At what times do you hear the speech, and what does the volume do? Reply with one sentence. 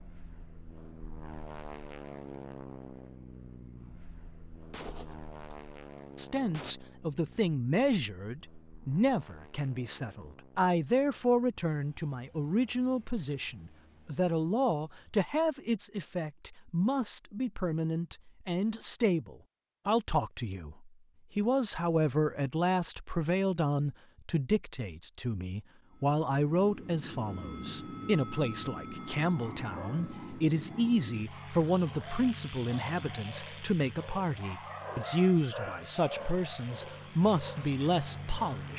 The speech can be heard from 6.2 to 38.7 s, at a steady volume.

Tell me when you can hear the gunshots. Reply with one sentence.
The gunshots can be heard from 4.7 to 6.8 s.